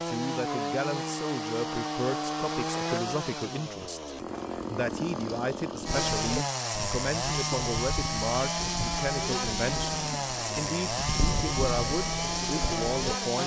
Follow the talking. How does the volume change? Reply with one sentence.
The loudness of the talking stays about the same.